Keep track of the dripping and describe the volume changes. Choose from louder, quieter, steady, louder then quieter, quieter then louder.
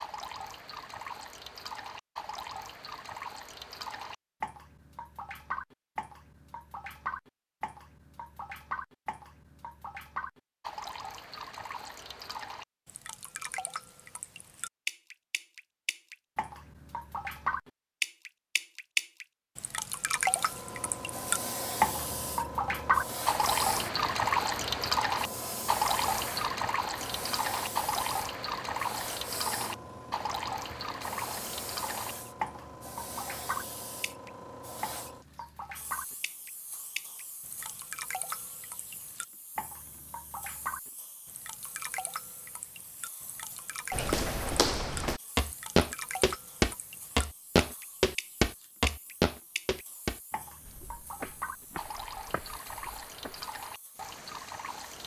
louder then quieter.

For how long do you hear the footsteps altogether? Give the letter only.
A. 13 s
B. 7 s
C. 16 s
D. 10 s
D.